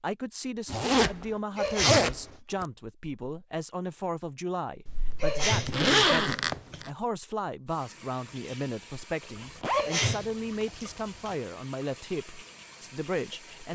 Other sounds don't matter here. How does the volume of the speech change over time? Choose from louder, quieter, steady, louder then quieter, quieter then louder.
steady.